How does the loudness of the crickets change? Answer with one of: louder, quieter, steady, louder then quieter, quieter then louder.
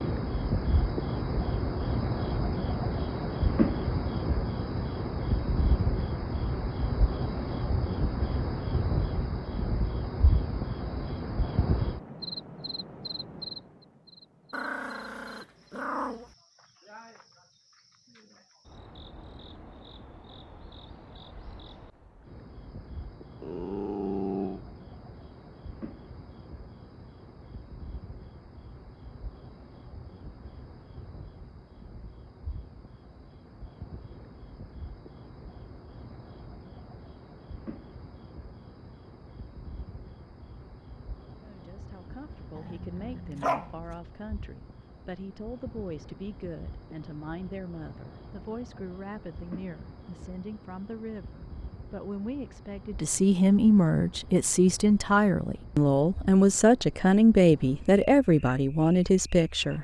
quieter.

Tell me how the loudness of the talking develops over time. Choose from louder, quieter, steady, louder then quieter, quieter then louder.
louder.